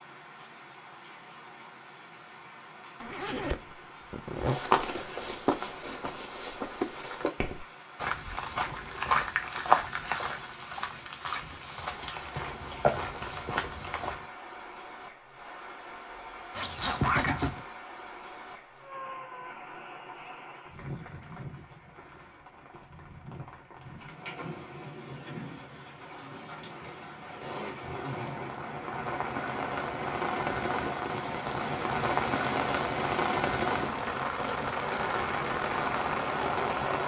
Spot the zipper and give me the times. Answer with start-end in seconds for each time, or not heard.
3.0-4.5, 16.6-17.6, 27.4-28.6.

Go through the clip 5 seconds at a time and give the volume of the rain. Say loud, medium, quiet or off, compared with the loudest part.
quiet, quiet, quiet, quiet, quiet, medium, loud, loud.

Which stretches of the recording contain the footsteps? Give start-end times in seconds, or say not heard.
4.3-14.2.